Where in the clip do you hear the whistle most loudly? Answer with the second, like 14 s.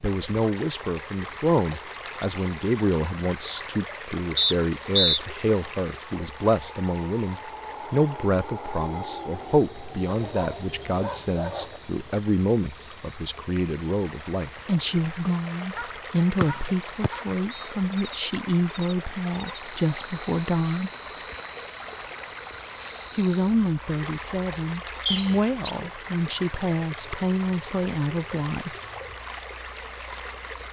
5 s.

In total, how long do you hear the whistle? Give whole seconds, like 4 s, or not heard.
3 s.